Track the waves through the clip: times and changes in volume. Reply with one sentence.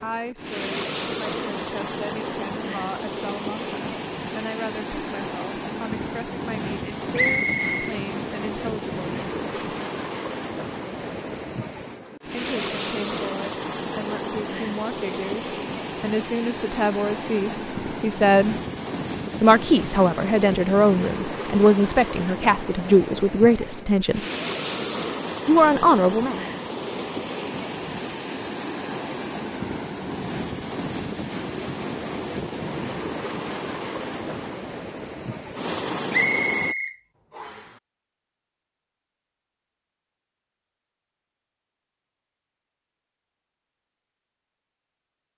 You can hear the waves from 0.0 to 36.8 s, at a steady volume.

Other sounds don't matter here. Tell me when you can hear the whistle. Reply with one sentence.
The whistle can be heard from 7.2 to 7.8 s and from 36.1 to 37.7 s.